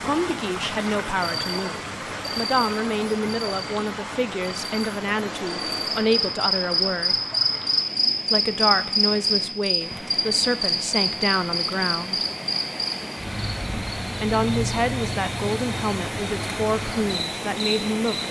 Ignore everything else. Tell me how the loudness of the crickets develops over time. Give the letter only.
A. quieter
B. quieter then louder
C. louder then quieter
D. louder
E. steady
C.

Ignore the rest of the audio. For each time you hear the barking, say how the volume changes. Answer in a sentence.
The barking can't be heard in this clip.